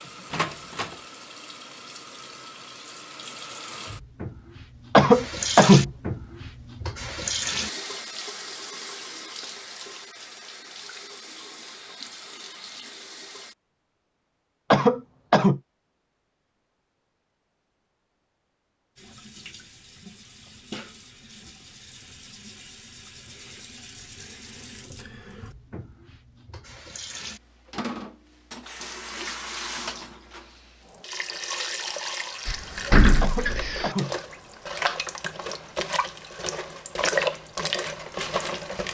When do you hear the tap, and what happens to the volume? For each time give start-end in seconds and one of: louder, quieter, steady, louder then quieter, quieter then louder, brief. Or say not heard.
0.0-13.6 louder then quieter
18.9-38.8 louder.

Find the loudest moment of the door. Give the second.
33 s.